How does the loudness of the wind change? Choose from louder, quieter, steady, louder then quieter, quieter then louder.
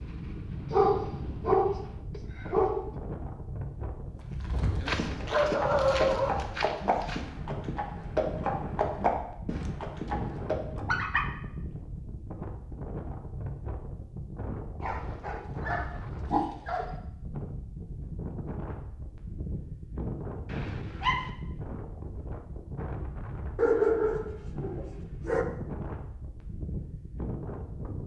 steady.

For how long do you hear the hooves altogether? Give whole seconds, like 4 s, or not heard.
7 s.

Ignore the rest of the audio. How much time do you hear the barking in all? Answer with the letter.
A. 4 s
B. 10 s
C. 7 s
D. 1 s
B.